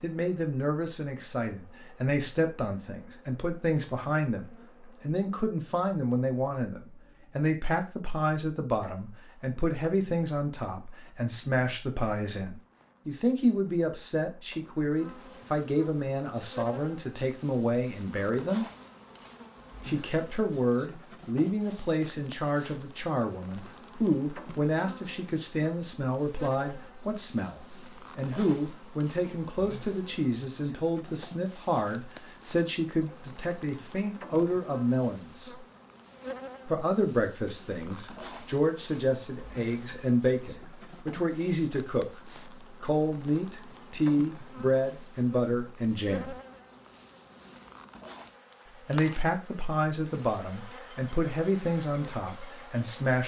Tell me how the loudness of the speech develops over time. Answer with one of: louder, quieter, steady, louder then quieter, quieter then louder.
steady.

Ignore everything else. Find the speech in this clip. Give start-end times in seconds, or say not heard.
0.0-18.6, 19.9-35.5, 36.6-42.2, 42.8-46.4, 48.9-53.2.